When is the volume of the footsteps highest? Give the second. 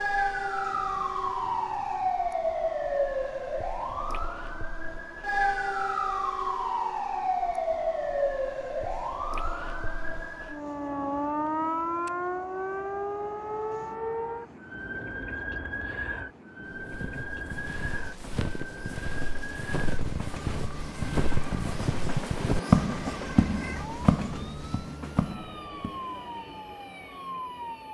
23 s.